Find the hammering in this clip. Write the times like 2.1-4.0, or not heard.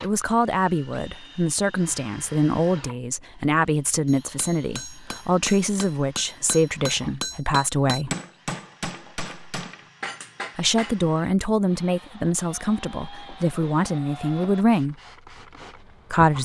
4.0-11.0.